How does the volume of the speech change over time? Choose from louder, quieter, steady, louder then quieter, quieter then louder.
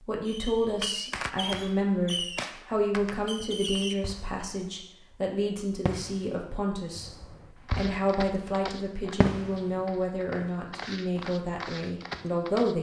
steady.